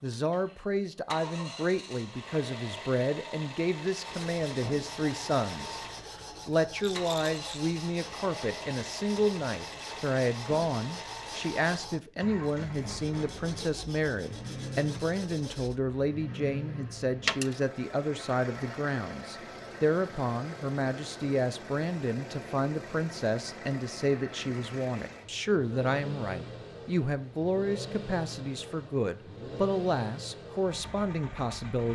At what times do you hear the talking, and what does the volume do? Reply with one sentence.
The talking can be heard from 0.0 to 31.9 s, at a steady volume.